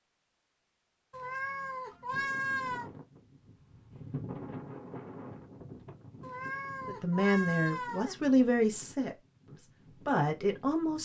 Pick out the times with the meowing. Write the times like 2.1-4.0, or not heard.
1.1-2.9, 6.2-8.2.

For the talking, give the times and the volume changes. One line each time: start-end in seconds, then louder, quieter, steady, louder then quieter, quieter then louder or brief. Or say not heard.
6.8-11.0 quieter then louder.